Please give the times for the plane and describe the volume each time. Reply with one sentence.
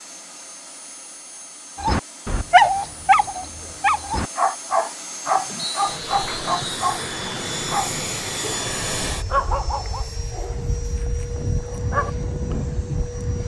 The plane can be heard from 0.0 to 13.4 s, getting louder.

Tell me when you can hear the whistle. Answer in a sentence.
The whistle can be heard from 5.5 to 6.8 s.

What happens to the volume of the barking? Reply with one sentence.
The volume of the barking goes down.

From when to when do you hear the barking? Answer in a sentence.
You can hear the barking from 1.8 to 12.2 s.